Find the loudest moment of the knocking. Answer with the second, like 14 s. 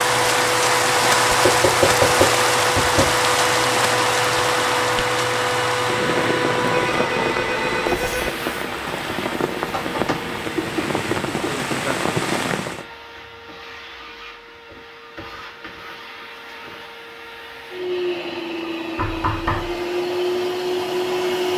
2 s.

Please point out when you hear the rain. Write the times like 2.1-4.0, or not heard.
0.0-12.8.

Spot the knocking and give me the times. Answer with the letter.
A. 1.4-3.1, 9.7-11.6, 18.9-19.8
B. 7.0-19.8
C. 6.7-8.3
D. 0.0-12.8
A.